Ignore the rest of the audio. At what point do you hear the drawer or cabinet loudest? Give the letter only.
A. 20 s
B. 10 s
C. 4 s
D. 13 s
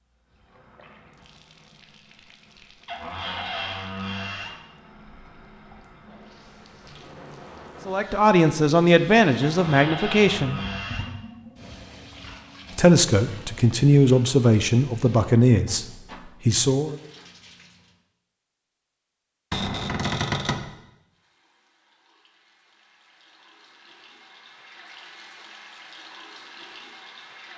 A.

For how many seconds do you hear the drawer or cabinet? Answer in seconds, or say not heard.
5 s.